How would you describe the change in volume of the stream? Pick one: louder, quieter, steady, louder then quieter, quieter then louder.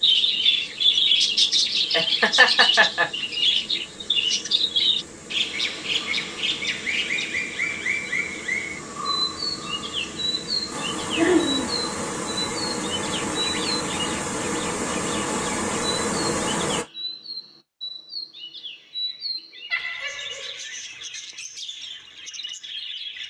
louder.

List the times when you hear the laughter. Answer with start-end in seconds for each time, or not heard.
1.9-3.1, 11.2-11.7, 19.7-20.6.